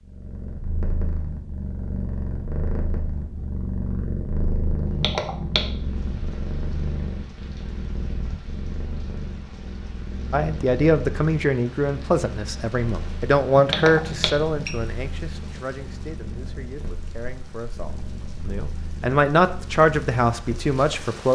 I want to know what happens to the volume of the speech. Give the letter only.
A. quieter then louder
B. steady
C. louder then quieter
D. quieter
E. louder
A.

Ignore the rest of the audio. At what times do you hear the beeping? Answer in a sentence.
You can hear the beeping from 4.8 to 5.8 s and from 13.6 to 14.8 s.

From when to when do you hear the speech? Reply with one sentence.
You can hear the speech from 10.3 to 21.2 s.